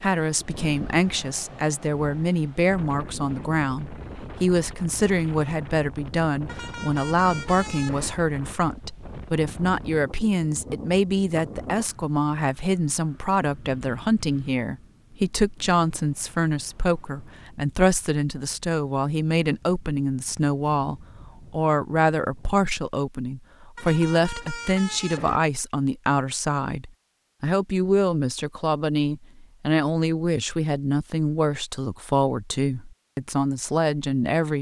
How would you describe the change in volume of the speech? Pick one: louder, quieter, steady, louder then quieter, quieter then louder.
steady.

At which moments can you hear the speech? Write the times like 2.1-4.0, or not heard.
0.0-34.5.